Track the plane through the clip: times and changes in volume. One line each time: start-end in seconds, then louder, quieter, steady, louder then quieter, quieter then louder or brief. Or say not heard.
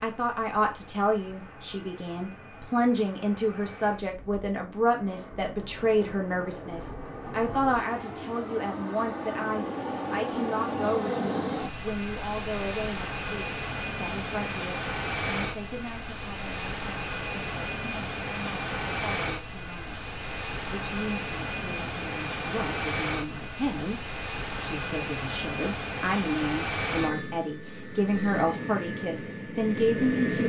0.0-30.4 louder.